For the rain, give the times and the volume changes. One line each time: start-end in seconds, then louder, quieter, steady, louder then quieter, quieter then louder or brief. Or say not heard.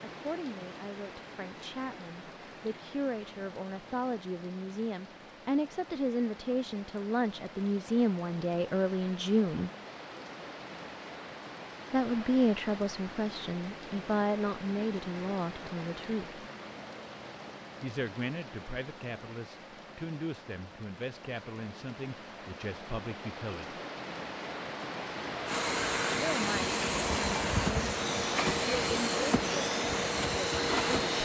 0.0-31.2 louder.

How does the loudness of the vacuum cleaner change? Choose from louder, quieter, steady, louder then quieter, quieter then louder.
steady.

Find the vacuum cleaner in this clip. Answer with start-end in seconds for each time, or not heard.
25.4-31.2.